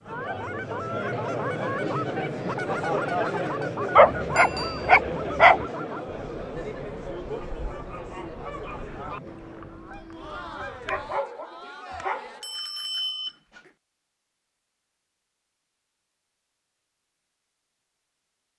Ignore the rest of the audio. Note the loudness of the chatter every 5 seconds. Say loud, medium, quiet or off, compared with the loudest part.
loud, medium, medium, off.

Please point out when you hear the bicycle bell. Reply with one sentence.
The bicycle bell can be heard from 4.3 to 5.0 s and from 11.9 to 13.7 s.